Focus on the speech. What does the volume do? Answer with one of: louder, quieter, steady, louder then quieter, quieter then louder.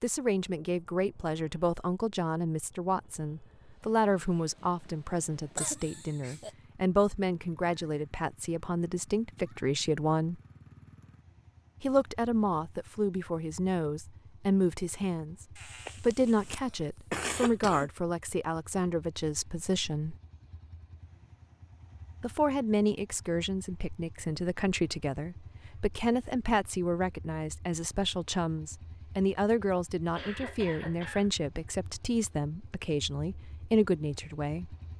steady.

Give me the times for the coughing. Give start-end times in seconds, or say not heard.
5.5-6.5, 15.6-17.9, 30.1-31.4.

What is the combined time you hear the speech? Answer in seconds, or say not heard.
31 s.